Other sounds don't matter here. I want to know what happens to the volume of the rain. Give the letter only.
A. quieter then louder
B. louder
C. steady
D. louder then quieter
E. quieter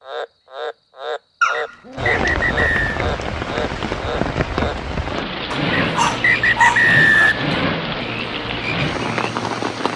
C.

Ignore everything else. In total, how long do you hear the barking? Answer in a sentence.
You can hear the barking for 3 seconds altogether.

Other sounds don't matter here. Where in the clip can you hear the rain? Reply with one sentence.
The rain can be heard from 1.9 to 9.9 s.